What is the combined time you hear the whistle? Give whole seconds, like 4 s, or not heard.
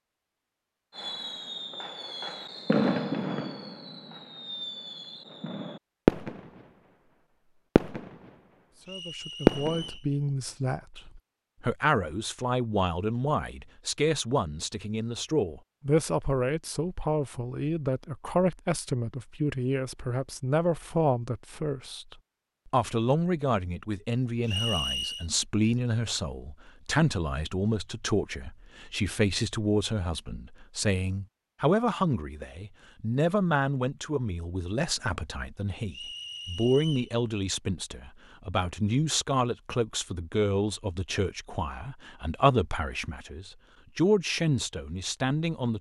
3 s.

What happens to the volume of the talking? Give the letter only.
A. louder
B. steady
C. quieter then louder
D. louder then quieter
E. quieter
B.